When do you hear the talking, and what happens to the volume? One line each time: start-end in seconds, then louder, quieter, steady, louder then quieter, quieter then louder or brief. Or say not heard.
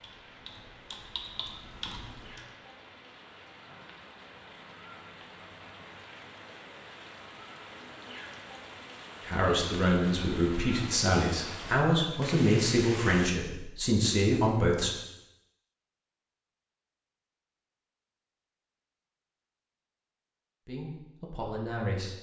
9.2-14.9 steady
20.6-22.1 brief.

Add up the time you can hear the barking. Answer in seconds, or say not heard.
not heard.